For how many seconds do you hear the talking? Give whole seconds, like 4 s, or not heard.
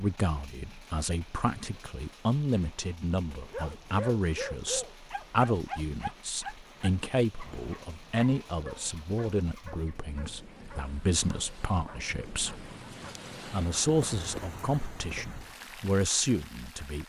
17 s.